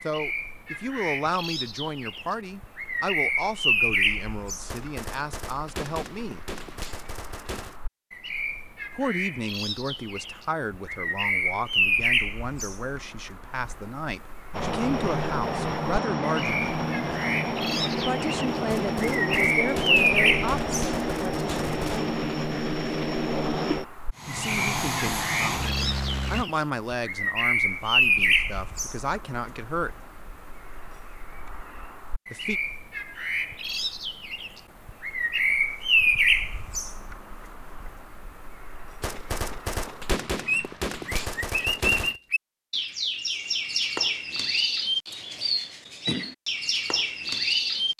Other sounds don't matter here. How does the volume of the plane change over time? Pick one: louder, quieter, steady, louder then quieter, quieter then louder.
steady.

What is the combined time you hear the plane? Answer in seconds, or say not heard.
12 s.